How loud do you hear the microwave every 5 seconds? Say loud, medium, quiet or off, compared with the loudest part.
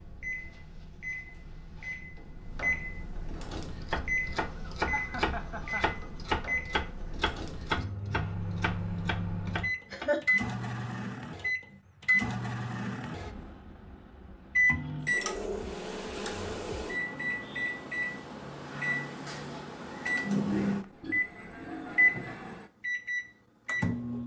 medium, medium, loud, medium, loud.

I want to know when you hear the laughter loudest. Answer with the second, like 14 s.
10 s.